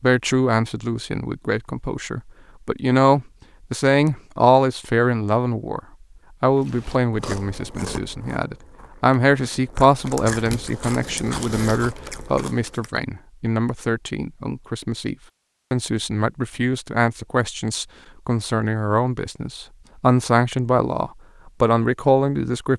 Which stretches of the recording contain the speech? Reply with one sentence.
You can hear the speech from 0.0 to 5.8 s and from 6.4 to 22.7 s.